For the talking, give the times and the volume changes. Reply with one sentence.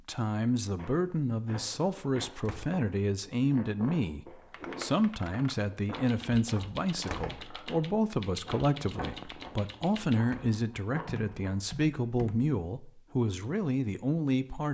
The talking can be heard from 0.1 to 14.6 s, at a steady volume.